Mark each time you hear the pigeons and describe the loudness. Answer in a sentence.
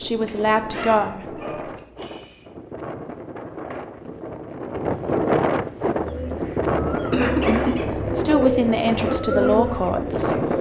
The pigeons can be heard from 5.9 to 10.5 s, getting louder.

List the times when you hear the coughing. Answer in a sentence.
The coughing can be heard from 7.1 to 7.8 s.